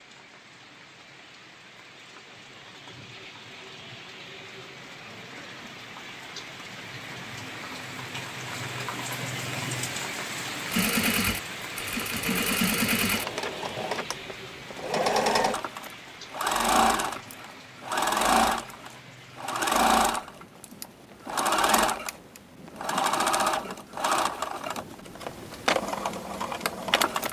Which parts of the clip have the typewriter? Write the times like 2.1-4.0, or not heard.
not heard.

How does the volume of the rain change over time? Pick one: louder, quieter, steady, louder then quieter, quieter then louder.
louder then quieter.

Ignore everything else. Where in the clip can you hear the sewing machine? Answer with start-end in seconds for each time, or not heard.
10.7-27.2.